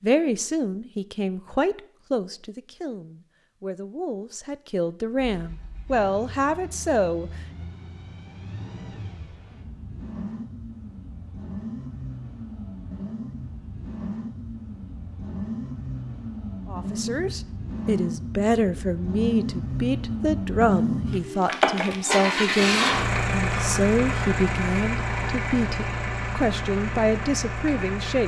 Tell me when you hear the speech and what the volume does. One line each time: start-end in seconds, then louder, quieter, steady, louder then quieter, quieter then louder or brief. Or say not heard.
0.0-7.3 quieter then louder
16.7-28.2 steady.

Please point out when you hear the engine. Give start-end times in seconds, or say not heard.
5.2-28.2.